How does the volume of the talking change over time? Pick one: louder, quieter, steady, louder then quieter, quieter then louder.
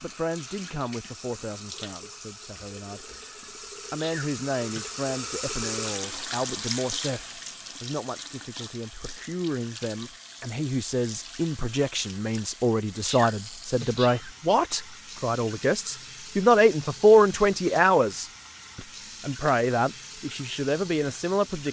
louder.